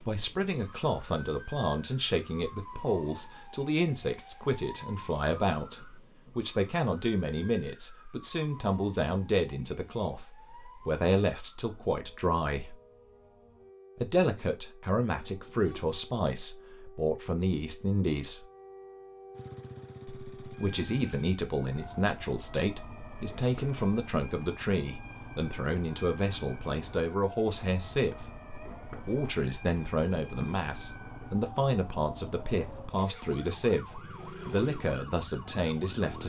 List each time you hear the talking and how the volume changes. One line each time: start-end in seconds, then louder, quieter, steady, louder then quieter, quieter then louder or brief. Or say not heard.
0.1-12.8 steady
13.9-18.4 steady
20.1-28.4 steady
28.9-36.2 steady.